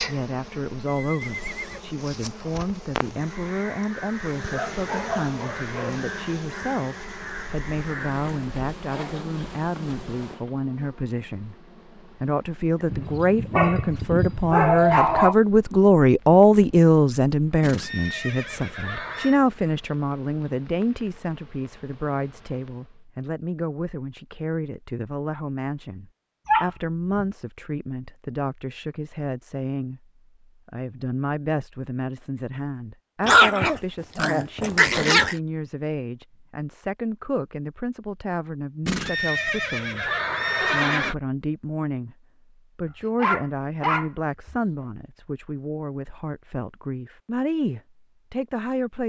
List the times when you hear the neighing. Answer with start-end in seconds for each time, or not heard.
0.8-1.9, 17.6-19.4, 38.9-41.1.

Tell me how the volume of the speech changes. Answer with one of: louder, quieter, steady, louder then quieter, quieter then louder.
louder then quieter.